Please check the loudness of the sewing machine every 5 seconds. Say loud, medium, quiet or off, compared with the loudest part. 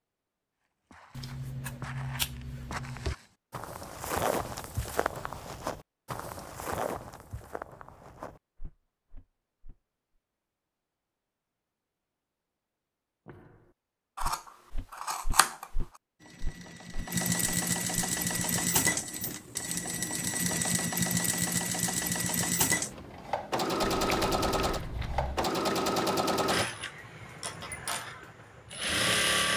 off, off, off, loud, loud, loud.